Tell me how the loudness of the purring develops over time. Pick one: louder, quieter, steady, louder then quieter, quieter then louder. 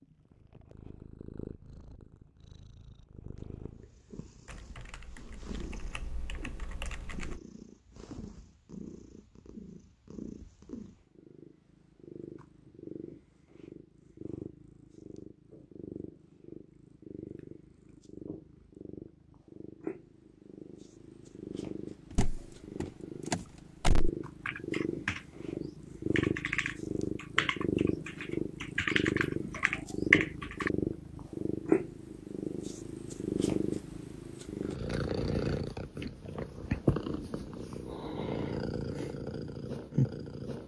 louder.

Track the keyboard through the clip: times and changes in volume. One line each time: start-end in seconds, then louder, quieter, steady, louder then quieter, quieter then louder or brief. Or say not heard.
4.5-7.4 brief
24.4-30.7 louder.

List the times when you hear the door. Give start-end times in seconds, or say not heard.
22.1-24.1.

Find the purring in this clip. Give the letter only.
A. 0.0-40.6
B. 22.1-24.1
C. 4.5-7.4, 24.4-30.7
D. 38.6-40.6
A.